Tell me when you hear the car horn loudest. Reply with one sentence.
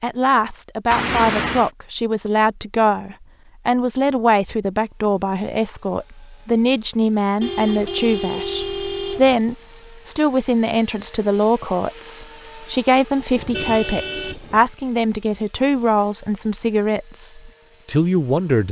The volume of the car horn peaks at 1 second.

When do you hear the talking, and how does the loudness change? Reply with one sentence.
The talking can be heard from 0.0 to 18.6 s, at a steady volume.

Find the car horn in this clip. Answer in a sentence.
You can hear the car horn from 0.9 to 1.7 s, from 7.4 to 9.4 s and from 13.3 to 14.7 s.